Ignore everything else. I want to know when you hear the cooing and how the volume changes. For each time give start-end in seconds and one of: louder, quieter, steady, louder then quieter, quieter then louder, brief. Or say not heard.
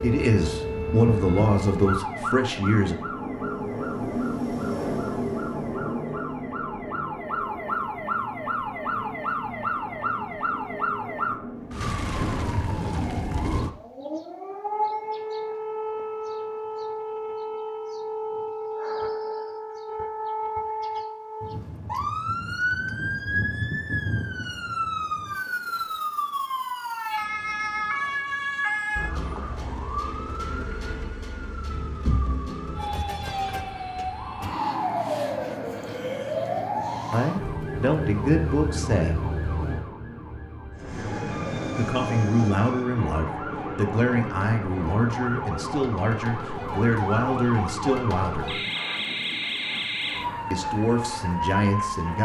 not heard.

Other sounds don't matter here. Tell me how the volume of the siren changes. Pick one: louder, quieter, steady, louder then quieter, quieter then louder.
steady.